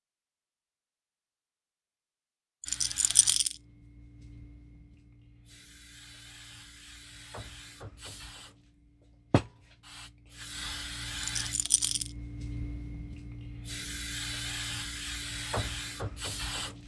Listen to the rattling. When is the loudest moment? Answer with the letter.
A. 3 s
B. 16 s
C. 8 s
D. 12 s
A.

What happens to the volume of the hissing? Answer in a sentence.
The loudness of the hissing goes up.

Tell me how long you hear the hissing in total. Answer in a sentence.
You can hear the hissing for 14 seconds altogether.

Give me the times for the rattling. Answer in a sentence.
The rattling can be heard from 2.6 to 3.5 s and from 11.2 to 12.1 s.